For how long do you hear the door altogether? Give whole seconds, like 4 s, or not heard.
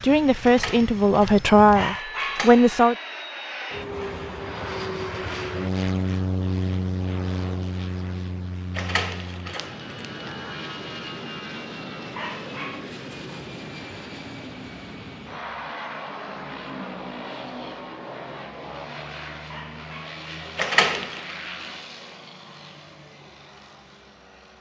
5 s.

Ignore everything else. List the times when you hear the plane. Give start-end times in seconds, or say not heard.
0.0-24.5.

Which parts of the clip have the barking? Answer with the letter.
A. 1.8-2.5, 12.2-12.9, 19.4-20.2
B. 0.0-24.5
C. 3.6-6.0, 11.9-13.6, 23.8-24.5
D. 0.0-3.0
A.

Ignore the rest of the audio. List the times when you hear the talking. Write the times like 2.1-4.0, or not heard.
0.0-3.0.